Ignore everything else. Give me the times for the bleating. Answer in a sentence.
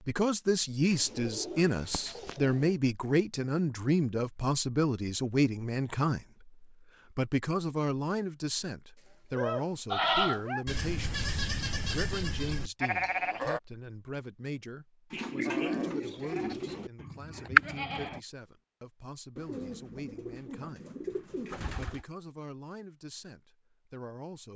The bleating can be heard from 9.9 to 13.6 s and from 15.4 to 18.2 s.